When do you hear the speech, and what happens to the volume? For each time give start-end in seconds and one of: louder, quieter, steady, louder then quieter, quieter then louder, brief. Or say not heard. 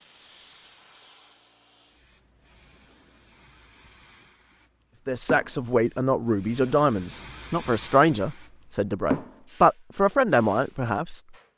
5.0-11.2 steady.